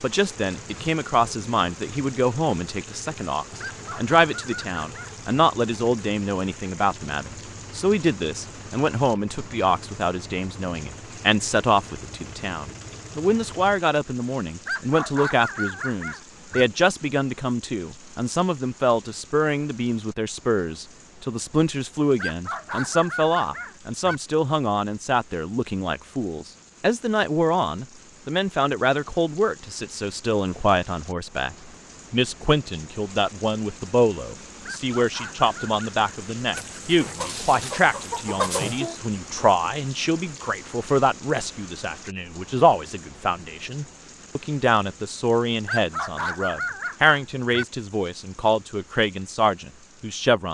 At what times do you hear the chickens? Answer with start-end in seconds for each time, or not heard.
36.5-39.0.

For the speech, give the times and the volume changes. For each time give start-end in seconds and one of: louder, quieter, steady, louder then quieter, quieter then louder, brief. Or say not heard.
0.0-50.4 steady.